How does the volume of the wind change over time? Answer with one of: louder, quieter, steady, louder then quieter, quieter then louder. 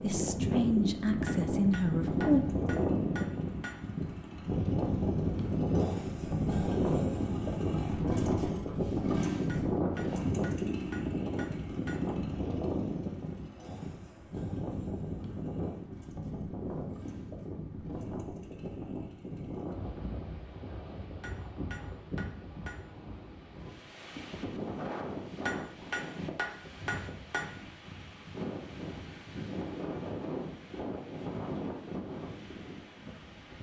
quieter.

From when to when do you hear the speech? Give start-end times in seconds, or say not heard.
0.0-2.5.